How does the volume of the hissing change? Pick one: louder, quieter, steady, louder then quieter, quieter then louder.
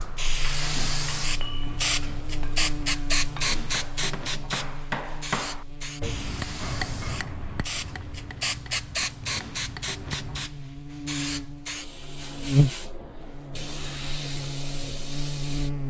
quieter.